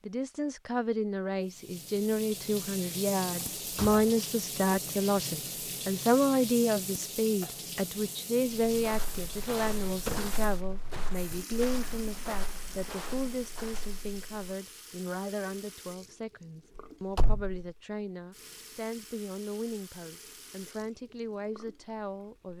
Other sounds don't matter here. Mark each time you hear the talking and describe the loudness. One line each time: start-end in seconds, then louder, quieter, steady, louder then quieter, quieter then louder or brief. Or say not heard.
0.0-22.5 quieter.